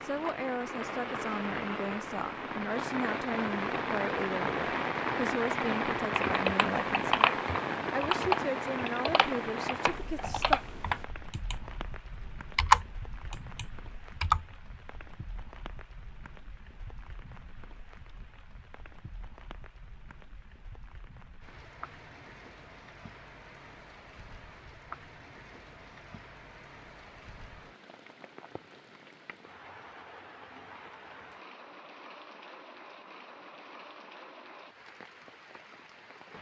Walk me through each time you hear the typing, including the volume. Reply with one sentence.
You can hear the typing from 6.2 to 14.4 s, getting quieter then louder.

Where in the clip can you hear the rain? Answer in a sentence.
You can hear the rain from 0.0 to 36.3 s.